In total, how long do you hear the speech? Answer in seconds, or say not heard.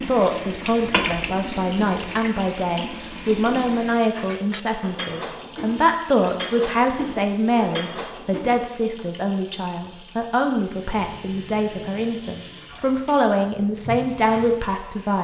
15 s.